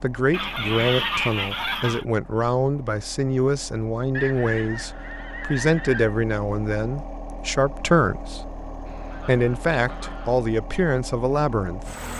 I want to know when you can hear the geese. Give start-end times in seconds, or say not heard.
0.3-2.0, 4.1-6.2, 8.8-10.4.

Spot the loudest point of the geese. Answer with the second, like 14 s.
1 s.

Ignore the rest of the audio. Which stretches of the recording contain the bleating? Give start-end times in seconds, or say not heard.
not heard.